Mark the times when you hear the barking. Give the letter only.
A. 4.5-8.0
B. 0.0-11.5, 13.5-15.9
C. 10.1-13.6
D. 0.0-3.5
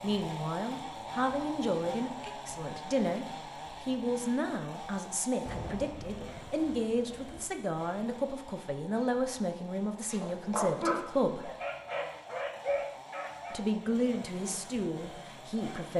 C.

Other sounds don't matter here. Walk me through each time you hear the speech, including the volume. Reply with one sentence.
You can hear the speech from 0.0 to 11.5 s, at a steady volume; and briefly from 13.5 to 15.9 s.